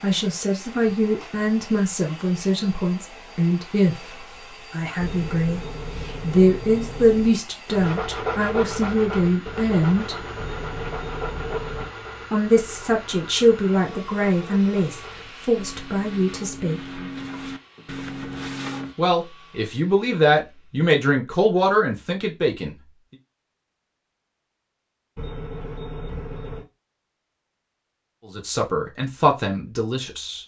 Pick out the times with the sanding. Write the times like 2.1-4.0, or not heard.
7.7-18.9.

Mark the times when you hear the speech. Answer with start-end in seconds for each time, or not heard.
0.0-10.2, 12.3-17.0, 18.9-22.8, 28.3-30.4.